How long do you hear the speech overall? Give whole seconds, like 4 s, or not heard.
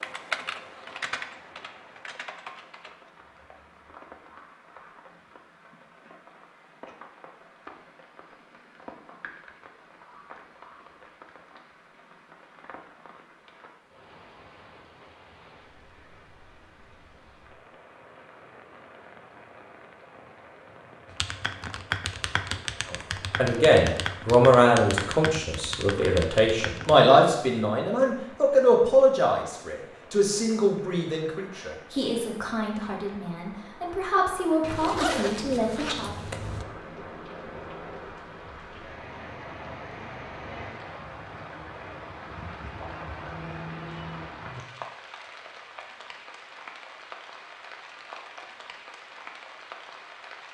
13 s.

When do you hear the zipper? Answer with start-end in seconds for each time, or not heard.
34.6-36.6.